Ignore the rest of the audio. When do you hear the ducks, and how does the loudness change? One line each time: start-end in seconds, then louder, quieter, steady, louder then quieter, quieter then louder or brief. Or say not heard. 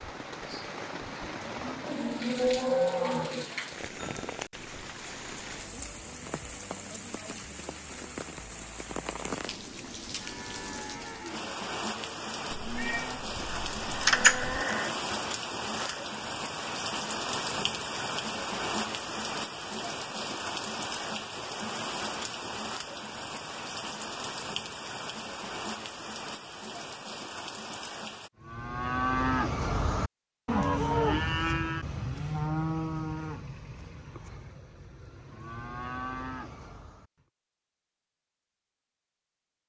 not heard.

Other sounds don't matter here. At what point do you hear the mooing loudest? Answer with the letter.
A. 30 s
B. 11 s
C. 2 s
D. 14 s
D.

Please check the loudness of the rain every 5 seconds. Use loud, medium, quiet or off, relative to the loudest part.
medium, medium, loud, loud, loud, medium, off, off.